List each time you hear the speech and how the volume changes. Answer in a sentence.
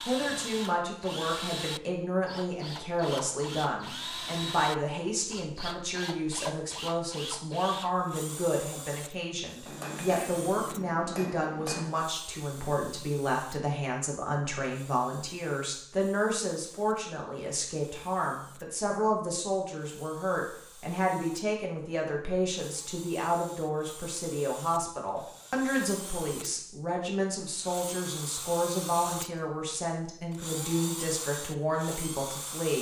The speech can be heard from 0.1 to 32.7 s, at a steady volume.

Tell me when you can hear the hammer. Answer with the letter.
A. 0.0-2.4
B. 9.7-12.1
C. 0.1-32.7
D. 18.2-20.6
B.